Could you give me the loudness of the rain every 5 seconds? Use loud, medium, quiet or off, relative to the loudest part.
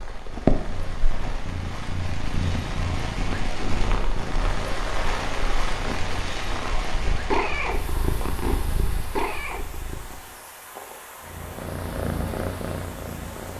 loud, loud, medium.